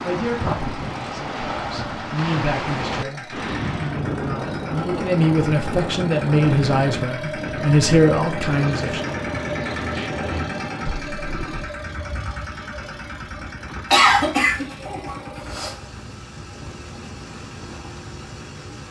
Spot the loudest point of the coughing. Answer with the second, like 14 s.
14 s.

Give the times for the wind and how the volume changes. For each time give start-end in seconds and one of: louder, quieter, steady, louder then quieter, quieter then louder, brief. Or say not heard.
0.0-18.8 quieter.